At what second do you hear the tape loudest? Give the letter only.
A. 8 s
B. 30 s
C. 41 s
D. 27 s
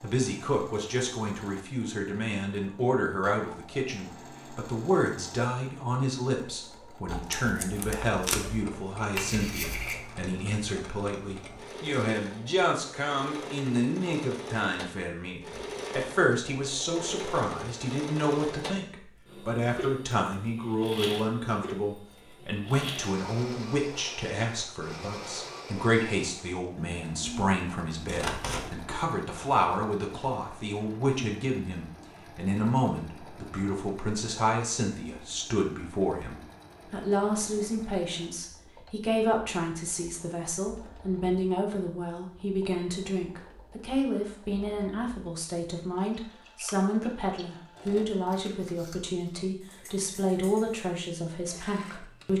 A.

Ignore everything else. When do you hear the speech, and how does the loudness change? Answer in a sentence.
The speech can be heard from 0.0 to 52.3 s, at a steady volume.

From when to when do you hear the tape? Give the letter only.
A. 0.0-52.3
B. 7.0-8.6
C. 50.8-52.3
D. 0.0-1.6
B.